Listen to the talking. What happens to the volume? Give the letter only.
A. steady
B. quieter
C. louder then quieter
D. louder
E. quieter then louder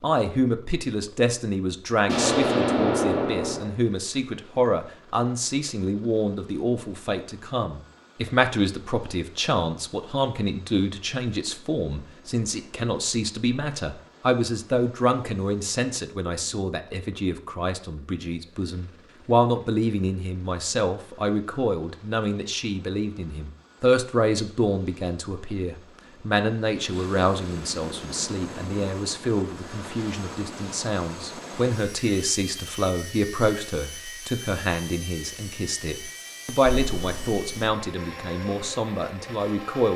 A.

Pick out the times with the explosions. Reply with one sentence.
The explosions can be heard from 2.0 to 3.7 s and from 36.6 to 37.8 s.